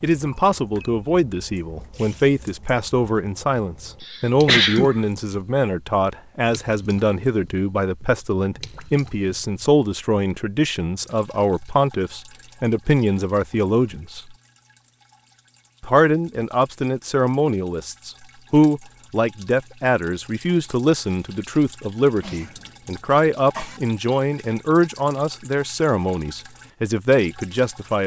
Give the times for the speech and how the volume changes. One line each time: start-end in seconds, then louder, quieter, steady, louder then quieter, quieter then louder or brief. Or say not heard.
0.0-14.2 steady
15.8-28.0 steady.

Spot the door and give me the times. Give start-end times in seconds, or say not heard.
not heard.